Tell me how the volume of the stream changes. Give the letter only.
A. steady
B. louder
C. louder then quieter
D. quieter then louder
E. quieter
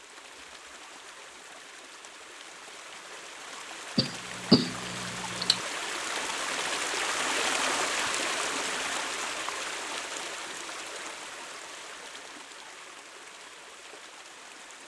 C.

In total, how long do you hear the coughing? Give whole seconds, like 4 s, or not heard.
2 s.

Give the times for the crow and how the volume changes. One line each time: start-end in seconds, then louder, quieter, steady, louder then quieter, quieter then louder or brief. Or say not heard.
not heard.